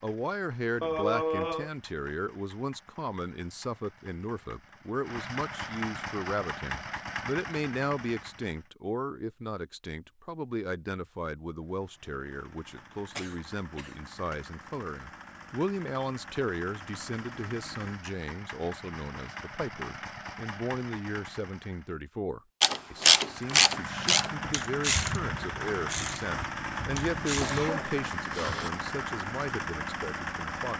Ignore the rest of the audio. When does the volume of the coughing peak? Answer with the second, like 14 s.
1 s.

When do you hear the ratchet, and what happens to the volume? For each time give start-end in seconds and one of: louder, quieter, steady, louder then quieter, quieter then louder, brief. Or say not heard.
22.6-27.6 quieter.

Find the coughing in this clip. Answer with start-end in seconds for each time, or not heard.
0.8-1.7, 13.2-14.3, 26.8-28.7.